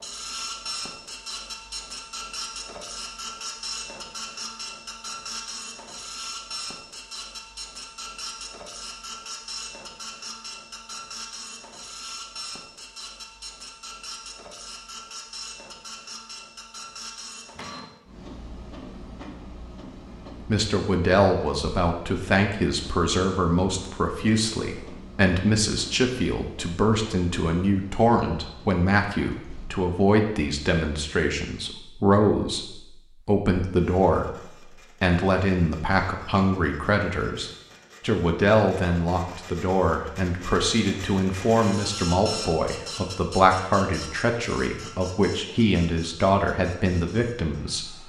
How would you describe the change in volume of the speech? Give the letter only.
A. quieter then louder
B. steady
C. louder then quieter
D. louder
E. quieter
B.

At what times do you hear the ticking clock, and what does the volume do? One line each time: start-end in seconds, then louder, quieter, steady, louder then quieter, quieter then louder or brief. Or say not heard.
not heard.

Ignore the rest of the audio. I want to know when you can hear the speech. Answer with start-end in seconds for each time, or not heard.
20.4-48.0.